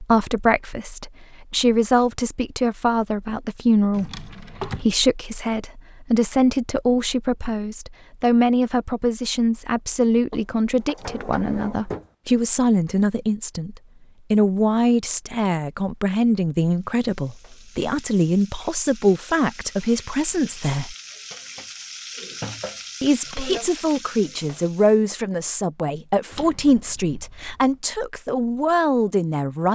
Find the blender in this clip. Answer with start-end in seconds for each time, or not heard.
not heard.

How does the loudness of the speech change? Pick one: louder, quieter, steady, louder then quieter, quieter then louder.
steady.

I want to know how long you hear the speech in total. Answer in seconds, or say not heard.
28 s.